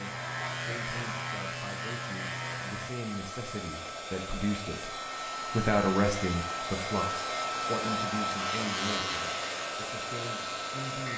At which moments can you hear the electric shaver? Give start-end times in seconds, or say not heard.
0.0-2.9, 8.3-11.1.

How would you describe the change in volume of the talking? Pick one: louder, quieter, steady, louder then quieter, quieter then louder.
louder then quieter.